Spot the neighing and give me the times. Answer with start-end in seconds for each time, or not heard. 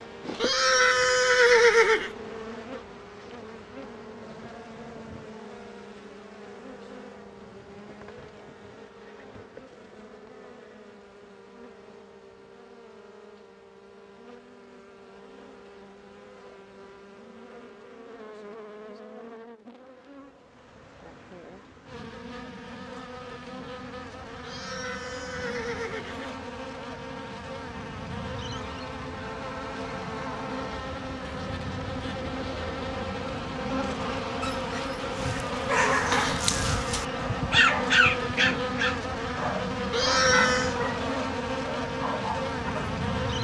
0.4-2.1, 24.4-26.4, 39.9-40.8.